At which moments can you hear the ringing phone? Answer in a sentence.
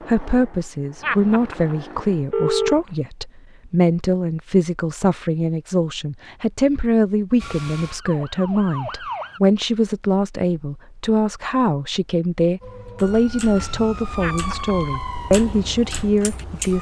You can hear the ringing phone from 1.0 to 2.9 s and from 14.2 to 14.8 s.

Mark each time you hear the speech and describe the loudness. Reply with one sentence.
You can hear the speech from 0.1 to 16.7 s, at a steady volume.